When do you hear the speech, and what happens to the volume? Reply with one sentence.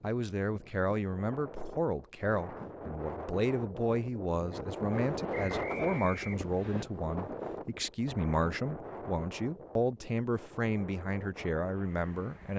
You can hear the speech from 0.0 to 12.5 s, at a steady volume.